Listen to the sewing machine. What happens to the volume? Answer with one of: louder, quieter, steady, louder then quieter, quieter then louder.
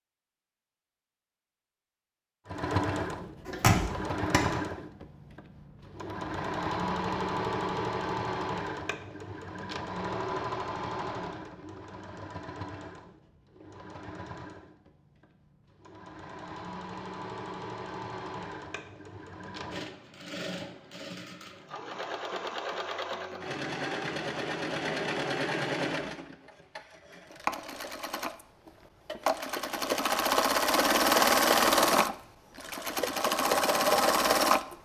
quieter then louder.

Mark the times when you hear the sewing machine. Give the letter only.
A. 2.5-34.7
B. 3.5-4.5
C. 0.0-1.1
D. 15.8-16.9
A.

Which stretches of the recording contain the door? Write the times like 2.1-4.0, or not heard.
3.5-4.5.